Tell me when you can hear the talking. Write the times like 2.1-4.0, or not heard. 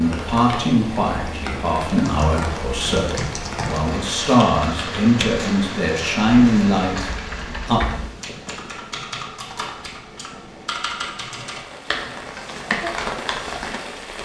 0.0-7.8.